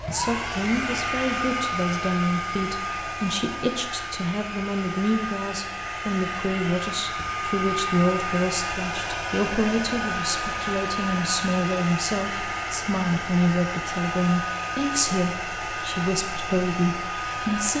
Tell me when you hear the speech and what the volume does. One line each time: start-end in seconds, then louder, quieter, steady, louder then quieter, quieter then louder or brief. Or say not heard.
0.1-17.7 steady.